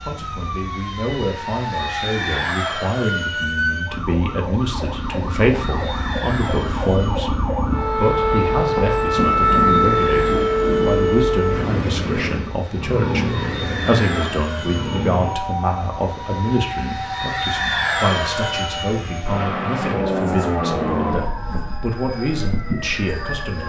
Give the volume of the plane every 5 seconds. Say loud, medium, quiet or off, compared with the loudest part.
medium, medium, medium, loud, loud.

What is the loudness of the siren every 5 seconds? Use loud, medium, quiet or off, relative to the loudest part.
medium, loud, loud, medium, quiet.